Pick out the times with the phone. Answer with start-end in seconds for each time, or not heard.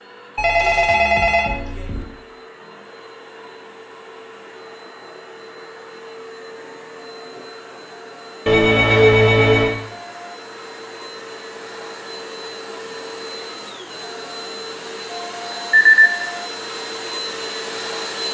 0.3-2.0, 8.4-9.8, 15.7-16.1.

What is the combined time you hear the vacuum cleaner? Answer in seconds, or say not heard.
18 s.